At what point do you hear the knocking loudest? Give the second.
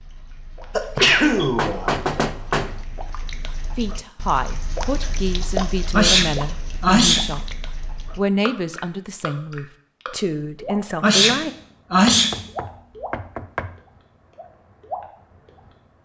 2 s.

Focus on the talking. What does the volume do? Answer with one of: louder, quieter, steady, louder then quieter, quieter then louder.
steady.